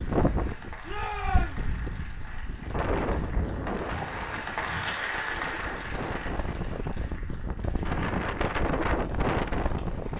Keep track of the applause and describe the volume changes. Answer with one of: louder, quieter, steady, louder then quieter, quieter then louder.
louder then quieter.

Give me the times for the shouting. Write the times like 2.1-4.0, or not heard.
0.8-1.7.